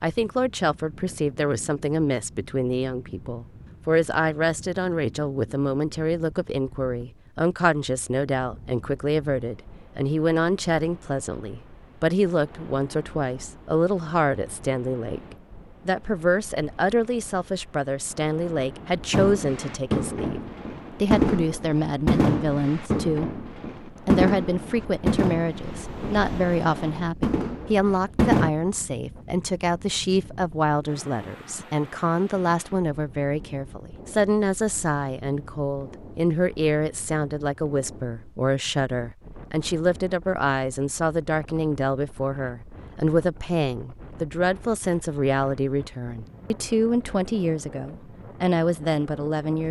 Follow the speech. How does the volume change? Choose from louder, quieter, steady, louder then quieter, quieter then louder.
steady.